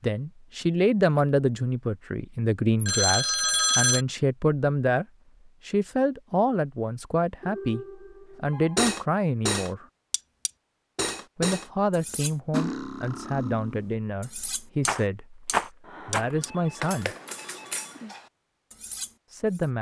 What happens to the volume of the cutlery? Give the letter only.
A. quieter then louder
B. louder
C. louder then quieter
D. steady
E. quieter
E.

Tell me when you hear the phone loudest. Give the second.
4 s.